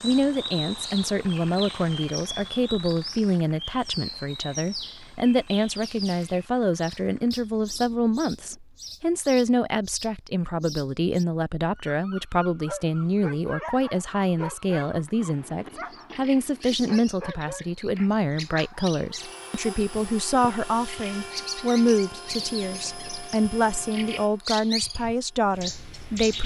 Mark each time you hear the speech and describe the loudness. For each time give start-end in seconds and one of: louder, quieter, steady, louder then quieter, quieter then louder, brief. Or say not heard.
0.0-26.4 steady.